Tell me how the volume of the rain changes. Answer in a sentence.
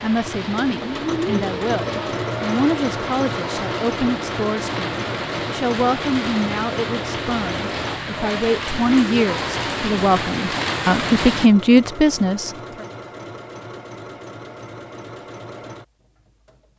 The loudness of the rain goes up.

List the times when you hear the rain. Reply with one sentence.
The rain can be heard from 0.0 to 11.5 s.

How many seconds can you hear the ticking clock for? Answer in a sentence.
The ticking clock can't be heard in this clip.